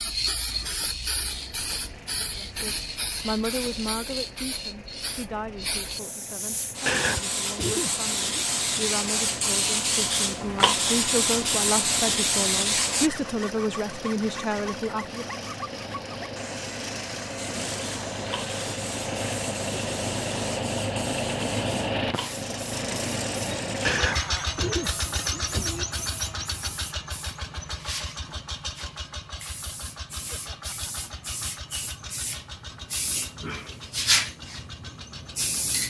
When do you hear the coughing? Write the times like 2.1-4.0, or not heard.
6.8-8.4, 23.8-25.9.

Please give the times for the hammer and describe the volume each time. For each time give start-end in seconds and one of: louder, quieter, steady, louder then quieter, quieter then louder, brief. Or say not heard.
not heard.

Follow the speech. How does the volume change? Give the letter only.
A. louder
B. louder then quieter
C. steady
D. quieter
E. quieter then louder
E.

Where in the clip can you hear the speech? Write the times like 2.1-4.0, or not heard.
2.4-15.4.